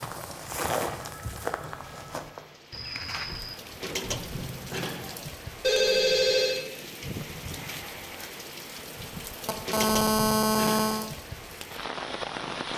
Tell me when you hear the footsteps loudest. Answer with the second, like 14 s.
1 s.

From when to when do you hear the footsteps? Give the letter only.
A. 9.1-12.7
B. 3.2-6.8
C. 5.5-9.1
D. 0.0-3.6
D.